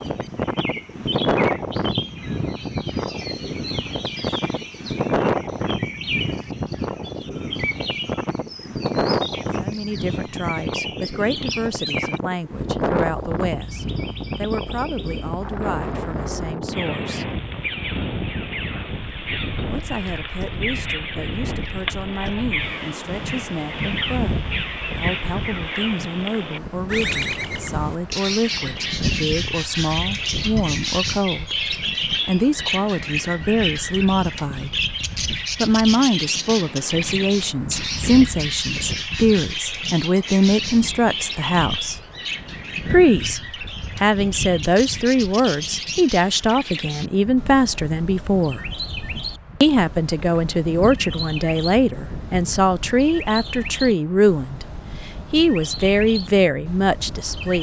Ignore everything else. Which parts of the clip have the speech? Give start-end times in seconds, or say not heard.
9.6-17.4, 19.6-34.8, 35.6-42.0, 42.9-43.4, 44.0-48.6, 49.6-57.5.